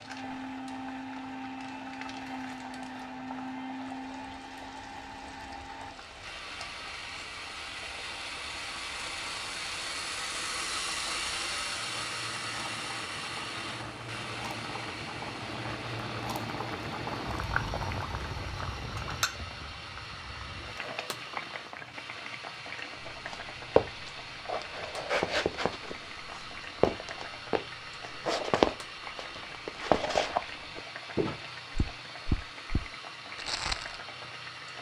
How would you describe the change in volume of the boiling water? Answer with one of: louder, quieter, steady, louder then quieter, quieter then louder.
louder then quieter.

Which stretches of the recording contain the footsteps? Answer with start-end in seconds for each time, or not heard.
23.1-34.0.